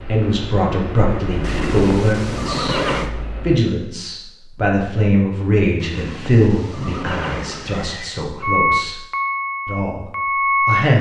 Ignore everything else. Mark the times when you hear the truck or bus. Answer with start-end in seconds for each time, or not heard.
0.0-3.6, 8.4-10.8.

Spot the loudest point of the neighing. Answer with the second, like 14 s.
3 s.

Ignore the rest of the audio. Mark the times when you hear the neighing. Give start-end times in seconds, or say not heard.
1.4-3.1, 5.8-8.2.